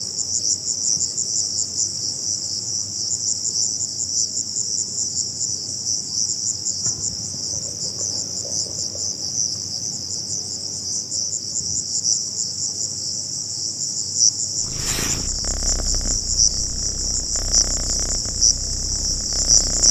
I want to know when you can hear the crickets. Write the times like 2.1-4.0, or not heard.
0.0-19.8.